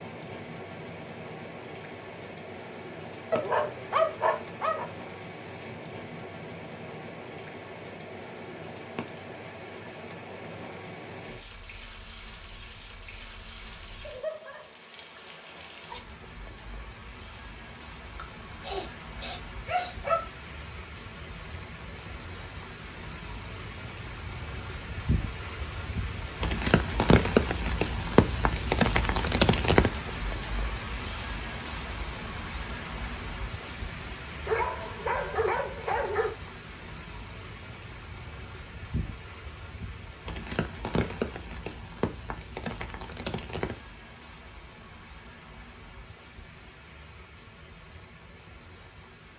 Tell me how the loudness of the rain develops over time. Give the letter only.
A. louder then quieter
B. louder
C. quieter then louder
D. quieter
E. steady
A.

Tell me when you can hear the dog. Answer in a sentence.
The dog can be heard from 3.3 to 4.8 s, from 18.1 to 20.2 s and from 34.5 to 36.3 s.